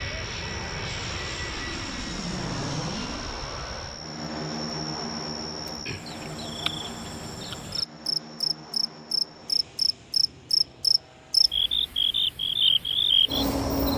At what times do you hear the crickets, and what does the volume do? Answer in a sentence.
The crickets can be heard from 0.0 to 13.9 s, getting louder.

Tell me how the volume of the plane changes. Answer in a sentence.
The loudness of the plane goes down.